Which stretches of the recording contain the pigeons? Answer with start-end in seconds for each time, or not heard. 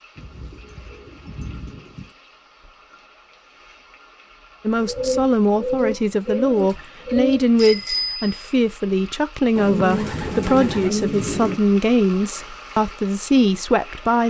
0.1-2.1, 4.8-7.5, 9.6-11.6.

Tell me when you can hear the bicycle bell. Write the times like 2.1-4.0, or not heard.
7.5-8.3.